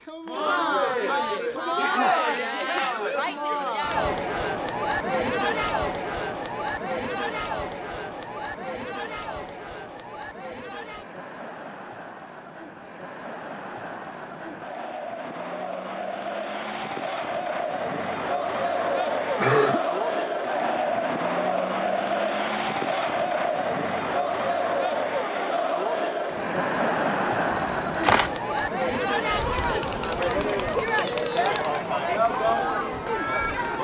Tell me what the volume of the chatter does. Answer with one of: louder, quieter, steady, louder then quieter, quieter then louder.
quieter then louder.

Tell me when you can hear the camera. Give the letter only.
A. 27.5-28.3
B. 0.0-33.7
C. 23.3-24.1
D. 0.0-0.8
A.